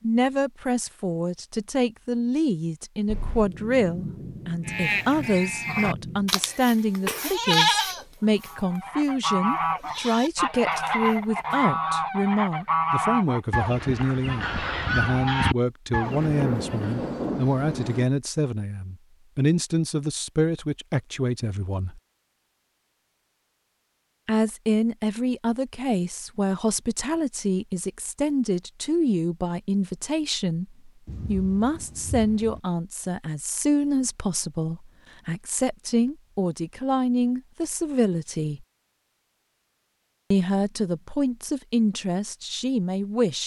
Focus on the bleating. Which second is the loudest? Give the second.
8 s.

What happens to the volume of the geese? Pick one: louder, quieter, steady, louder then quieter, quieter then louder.
steady.